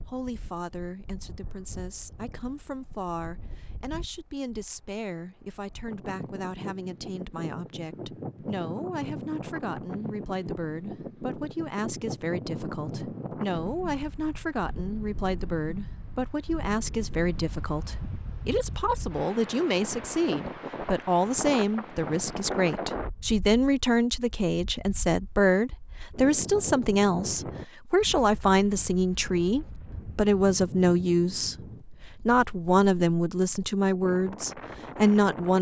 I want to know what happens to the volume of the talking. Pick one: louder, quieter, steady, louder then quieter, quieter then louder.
louder.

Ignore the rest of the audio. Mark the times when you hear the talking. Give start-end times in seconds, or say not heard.
0.1-35.5.